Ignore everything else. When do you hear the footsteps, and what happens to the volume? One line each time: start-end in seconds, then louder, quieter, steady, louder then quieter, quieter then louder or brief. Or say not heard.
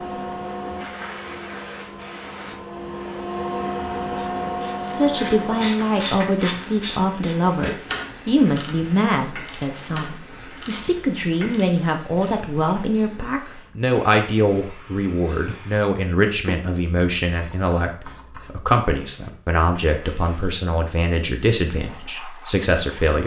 not heard.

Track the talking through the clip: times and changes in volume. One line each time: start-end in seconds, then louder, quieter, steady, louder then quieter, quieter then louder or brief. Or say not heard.
4.8-23.2 steady.